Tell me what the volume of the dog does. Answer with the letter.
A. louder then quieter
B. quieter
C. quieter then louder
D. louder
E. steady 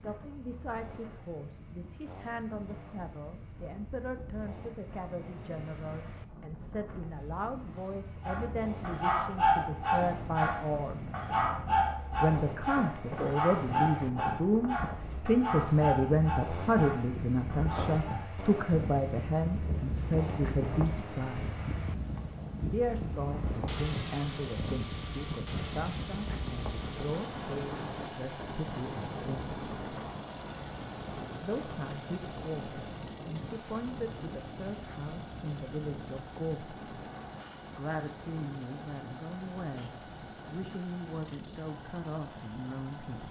B.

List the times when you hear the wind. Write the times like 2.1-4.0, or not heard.
0.0-43.2.